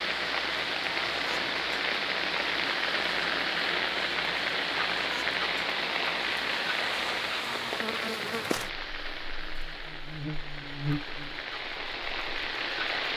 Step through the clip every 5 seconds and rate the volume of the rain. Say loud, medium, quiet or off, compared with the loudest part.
loud, loud, medium.